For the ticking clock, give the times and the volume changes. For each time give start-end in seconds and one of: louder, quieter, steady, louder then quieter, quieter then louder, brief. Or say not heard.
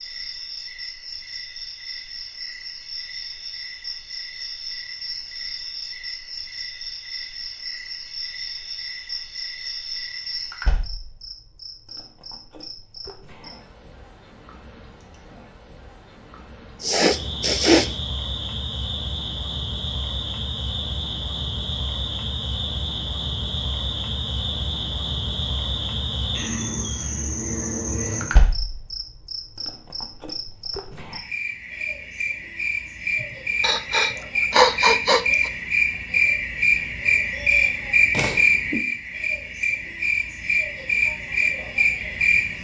not heard.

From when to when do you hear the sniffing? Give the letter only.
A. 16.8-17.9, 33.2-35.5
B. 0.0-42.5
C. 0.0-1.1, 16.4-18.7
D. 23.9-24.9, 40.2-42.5
A.